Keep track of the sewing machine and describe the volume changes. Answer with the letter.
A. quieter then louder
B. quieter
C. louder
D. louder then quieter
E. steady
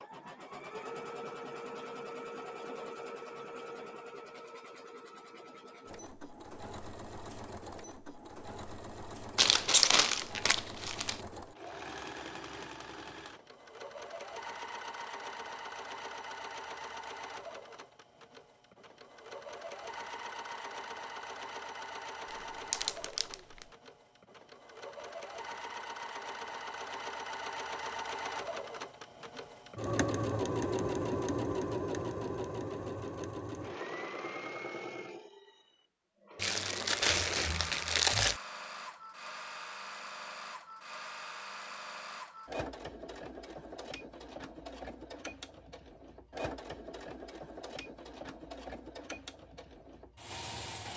D.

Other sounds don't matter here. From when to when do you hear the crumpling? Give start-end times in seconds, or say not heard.
9.3-11.2, 22.7-23.6, 36.4-38.4.